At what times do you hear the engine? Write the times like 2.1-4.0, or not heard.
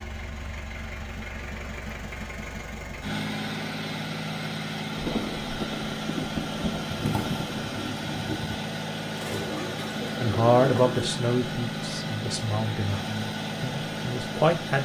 0.0-14.8.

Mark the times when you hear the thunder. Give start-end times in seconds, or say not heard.
5.0-7.8.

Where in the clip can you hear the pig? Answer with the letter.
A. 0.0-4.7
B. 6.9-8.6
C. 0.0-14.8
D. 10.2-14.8
B.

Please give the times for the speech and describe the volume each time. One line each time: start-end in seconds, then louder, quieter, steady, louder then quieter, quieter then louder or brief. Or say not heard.
10.2-14.8 quieter.